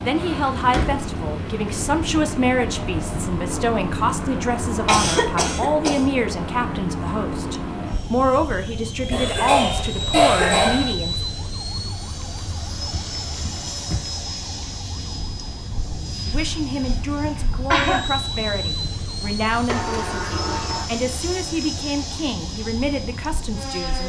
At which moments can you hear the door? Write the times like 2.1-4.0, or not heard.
0.2-1.1, 12.9-14.0, 19.6-20.9.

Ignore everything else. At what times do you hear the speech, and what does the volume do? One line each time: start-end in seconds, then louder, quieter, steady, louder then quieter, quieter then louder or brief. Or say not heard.
0.0-11.2 steady
16.2-24.0 steady.